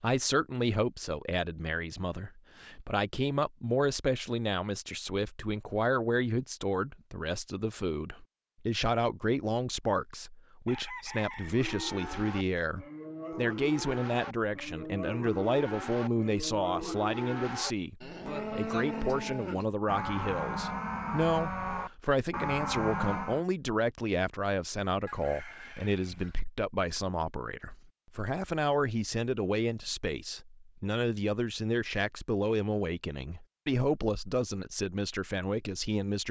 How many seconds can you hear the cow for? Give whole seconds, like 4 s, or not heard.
12 s.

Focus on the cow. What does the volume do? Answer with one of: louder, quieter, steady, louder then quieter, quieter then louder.
louder.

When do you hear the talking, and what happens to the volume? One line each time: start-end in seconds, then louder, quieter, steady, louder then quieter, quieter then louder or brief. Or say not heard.
0.0-36.2 steady.